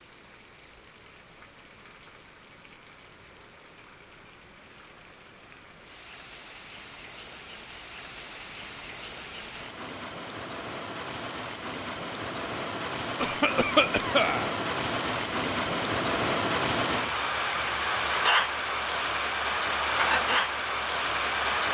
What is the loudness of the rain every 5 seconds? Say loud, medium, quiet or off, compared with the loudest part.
quiet, quiet, medium, loud, loud.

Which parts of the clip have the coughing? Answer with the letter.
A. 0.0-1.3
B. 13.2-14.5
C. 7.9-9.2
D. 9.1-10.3
B.